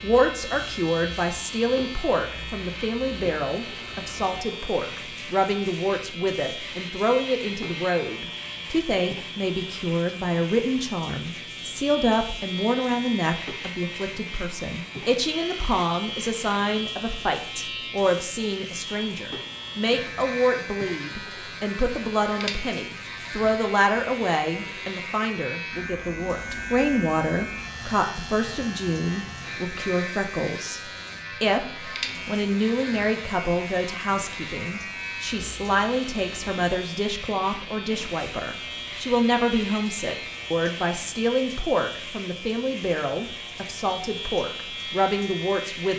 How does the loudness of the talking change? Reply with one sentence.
The loudness of the talking stays about the same.